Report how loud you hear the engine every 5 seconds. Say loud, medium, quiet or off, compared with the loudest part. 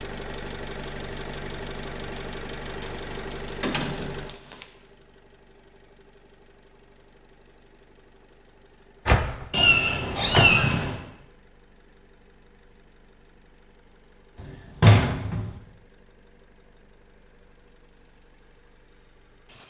loud, quiet, quiet, quiet.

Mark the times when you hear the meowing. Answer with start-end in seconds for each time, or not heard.
9.5-10.9.